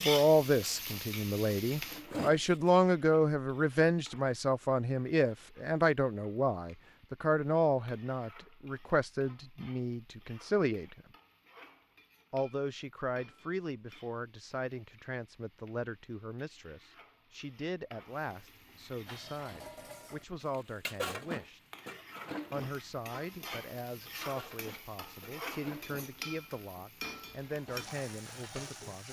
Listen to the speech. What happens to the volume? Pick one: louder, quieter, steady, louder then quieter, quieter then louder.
quieter.